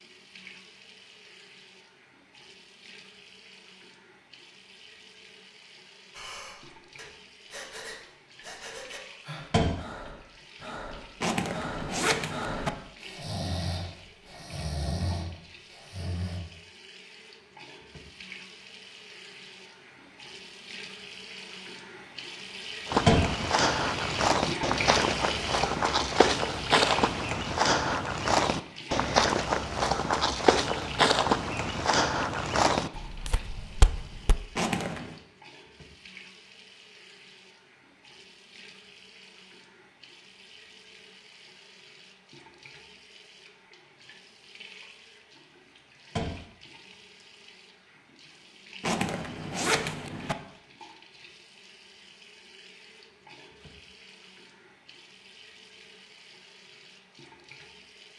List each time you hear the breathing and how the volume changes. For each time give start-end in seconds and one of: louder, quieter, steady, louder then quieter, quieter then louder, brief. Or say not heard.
6.1-16.4 louder.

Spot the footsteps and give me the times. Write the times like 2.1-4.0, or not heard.
22.9-34.4.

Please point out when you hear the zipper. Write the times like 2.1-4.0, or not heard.
11.2-12.7, 34.5-35.2, 48.8-50.4.